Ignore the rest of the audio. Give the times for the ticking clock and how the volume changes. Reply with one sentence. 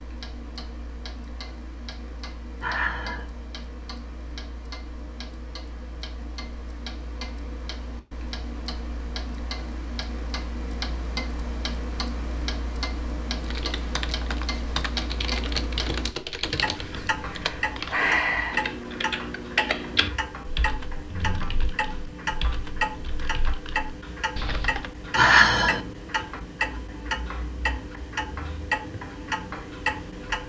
You can hear the ticking clock from 0.0 to 30.4 s, getting louder.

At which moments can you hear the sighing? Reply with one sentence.
The sighing can be heard from 2.6 to 3.2 s, from 17.2 to 18.6 s and from 25.1 to 25.8 s.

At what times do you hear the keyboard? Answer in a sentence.
You can hear the keyboard from 13.4 to 24.9 s.